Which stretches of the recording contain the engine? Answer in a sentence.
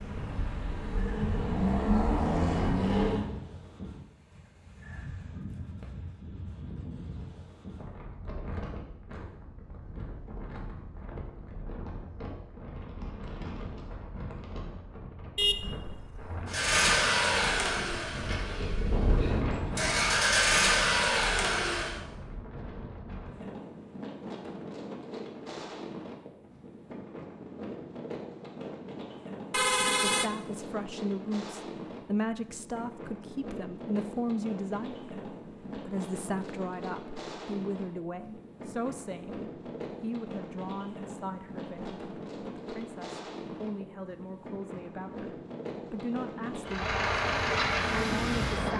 The engine can be heard from 0.0 to 3.2 s, from 16.4 to 22.0 s and from 46.6 to 48.7 s.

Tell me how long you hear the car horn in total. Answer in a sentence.
The car horn can be heard for 2 seconds in total.